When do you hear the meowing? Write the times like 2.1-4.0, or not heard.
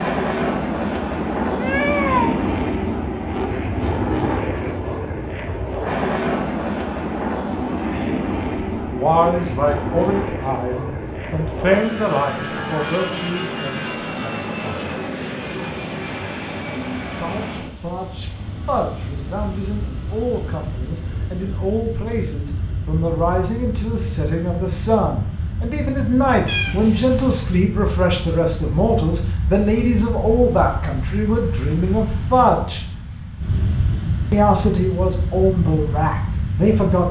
1.4-2.4, 26.4-27.6.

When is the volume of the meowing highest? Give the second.
2 s.